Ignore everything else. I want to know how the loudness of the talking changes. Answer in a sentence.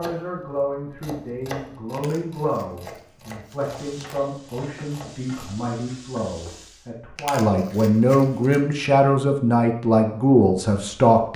The loudness of the talking goes up.